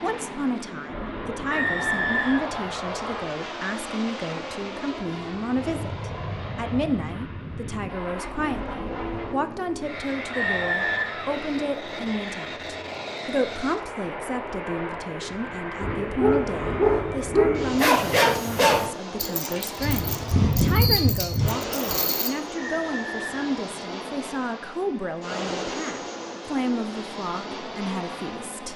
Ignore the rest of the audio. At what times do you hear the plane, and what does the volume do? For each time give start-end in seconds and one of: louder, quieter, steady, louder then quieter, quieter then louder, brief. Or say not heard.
0.0-28.7 steady.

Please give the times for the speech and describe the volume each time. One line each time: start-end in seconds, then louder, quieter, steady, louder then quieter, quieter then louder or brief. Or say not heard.
0.0-28.7 steady.